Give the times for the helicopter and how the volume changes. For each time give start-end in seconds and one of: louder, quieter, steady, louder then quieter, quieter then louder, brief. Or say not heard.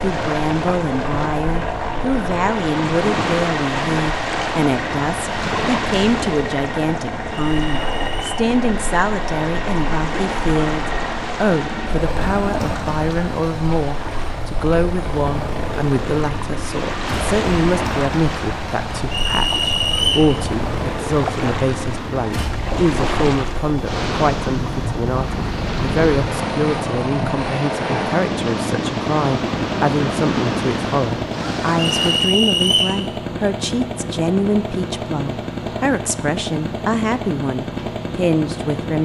0.0-39.0 steady.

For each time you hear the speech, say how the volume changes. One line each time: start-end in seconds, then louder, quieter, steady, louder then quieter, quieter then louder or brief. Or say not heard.
0.0-39.0 steady.